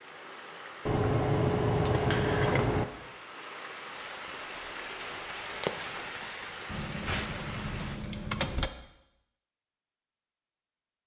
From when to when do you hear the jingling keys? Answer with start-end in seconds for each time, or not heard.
0.8-2.9, 6.7-8.7.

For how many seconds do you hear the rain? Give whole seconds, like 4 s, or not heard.
8 s.